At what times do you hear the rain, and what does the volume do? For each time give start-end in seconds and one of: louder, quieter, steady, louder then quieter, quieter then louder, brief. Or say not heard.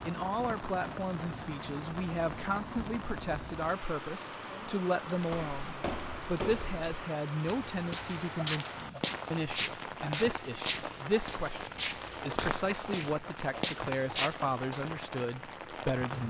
0.0-16.2 steady.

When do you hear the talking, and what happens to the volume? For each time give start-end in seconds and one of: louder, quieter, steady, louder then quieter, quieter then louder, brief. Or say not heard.
0.0-16.2 steady.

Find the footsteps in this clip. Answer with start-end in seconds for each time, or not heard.
5.1-14.8.